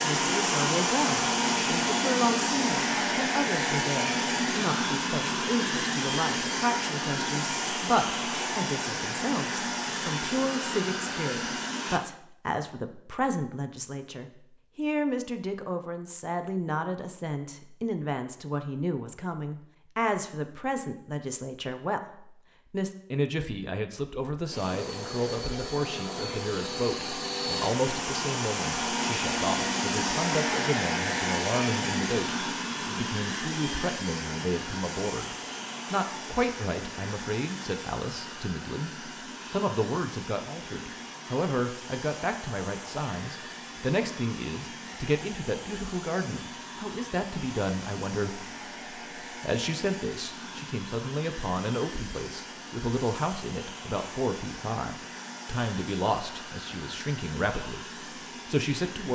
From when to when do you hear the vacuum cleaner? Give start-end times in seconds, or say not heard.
0.0-12.0, 24.5-59.0.